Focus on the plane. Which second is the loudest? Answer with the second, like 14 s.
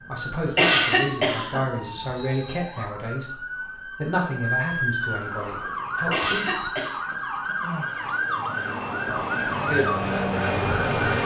11 s.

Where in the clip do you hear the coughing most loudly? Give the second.
1 s.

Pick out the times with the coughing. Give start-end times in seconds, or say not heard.
0.5-1.6, 6.0-7.0.